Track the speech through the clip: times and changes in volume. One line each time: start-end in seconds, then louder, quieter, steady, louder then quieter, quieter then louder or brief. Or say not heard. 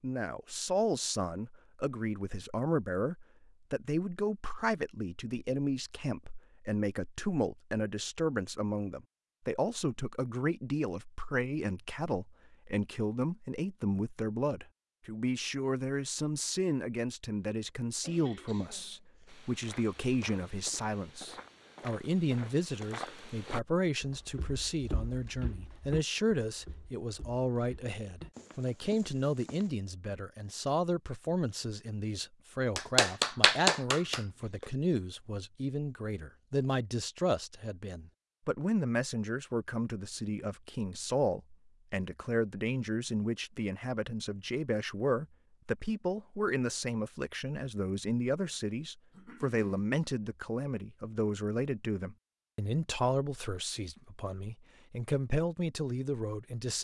0.0-56.7 steady.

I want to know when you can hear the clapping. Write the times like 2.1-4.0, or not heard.
32.8-34.6.